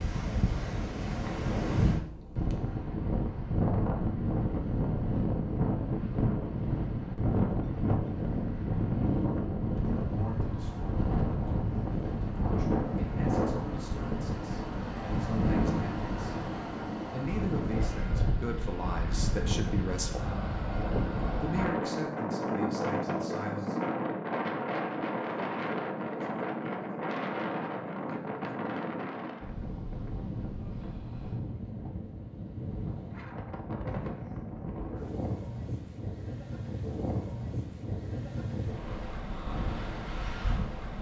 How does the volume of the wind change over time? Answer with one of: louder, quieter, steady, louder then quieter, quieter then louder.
quieter.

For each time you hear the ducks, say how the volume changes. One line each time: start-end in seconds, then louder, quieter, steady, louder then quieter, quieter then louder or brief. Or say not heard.
not heard.